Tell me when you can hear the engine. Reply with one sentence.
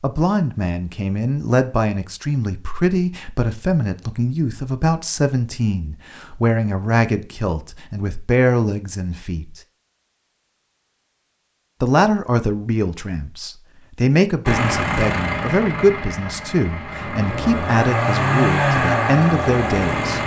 You can hear the engine from 14.4 to 20.2 s.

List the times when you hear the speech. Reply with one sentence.
You can hear the speech from 0.0 to 9.6 s and from 11.8 to 20.2 s.